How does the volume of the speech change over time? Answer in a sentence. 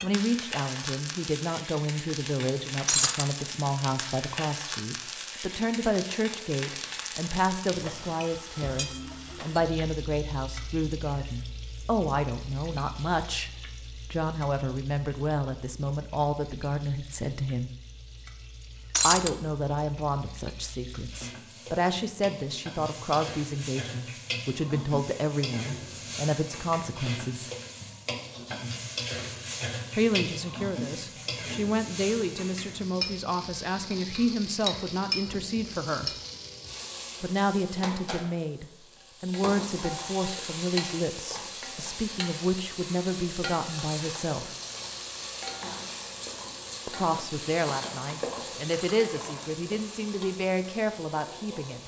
The volume of the speech stays about the same.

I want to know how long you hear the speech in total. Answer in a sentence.
The speech can be heard for 44 seconds in total.